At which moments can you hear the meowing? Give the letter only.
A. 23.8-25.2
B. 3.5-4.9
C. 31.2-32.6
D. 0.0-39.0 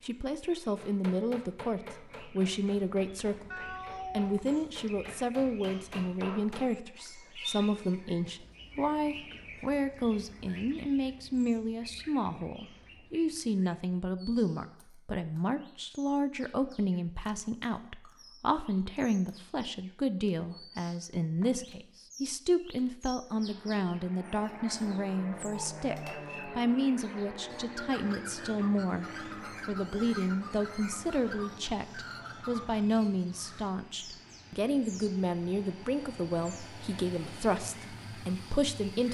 B.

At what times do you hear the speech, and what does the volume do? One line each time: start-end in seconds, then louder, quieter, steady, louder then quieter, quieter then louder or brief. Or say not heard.
0.0-39.0 steady.